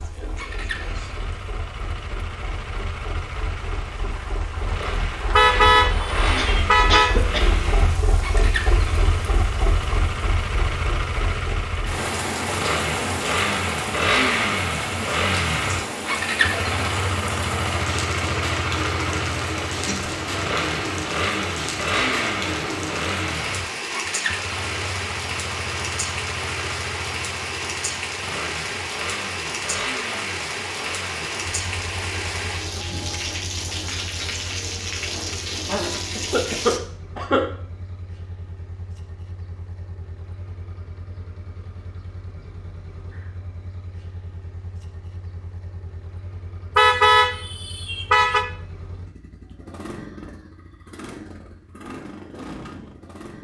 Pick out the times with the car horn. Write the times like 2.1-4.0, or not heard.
5.3-7.1, 46.8-48.5.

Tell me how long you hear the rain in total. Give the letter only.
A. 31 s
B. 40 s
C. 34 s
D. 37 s
D.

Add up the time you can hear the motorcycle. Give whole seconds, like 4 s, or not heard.
53 s.